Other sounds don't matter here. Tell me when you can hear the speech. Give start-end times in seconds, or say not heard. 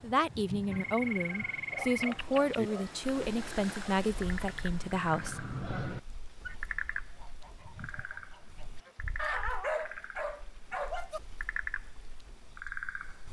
0.0-5.4.